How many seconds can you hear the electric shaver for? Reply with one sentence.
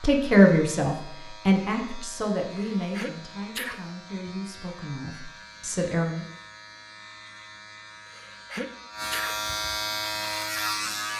You can hear the electric shaver for 11 seconds altogether.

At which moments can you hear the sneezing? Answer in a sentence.
You can hear the sneezing from 2.5 to 3.8 s and from 8.1 to 9.3 s.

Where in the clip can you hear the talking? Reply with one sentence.
The talking can be heard from 0.0 to 6.2 s.